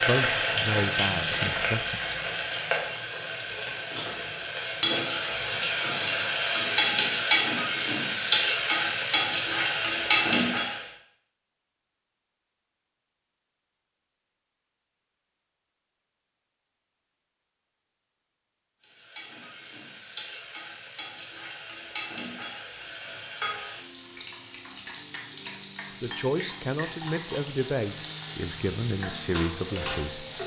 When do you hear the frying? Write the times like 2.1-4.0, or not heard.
0.0-10.9, 18.8-30.4.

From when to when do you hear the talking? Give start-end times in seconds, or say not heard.
0.0-2.0, 25.9-30.4.